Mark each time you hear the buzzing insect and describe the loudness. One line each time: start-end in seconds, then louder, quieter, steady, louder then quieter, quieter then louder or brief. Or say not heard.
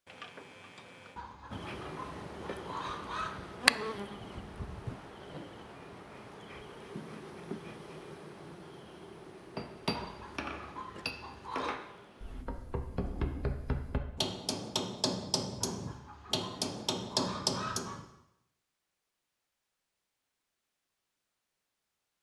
1.5-12.4 quieter.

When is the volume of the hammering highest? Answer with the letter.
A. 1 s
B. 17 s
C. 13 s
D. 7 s
B.